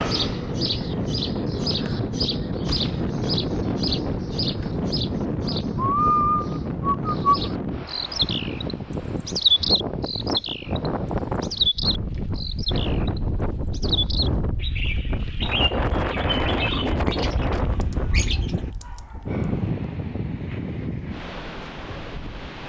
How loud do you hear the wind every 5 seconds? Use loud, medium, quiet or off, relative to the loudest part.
loud, loud, loud, loud, medium.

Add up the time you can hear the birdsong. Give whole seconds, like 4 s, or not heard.
19 s.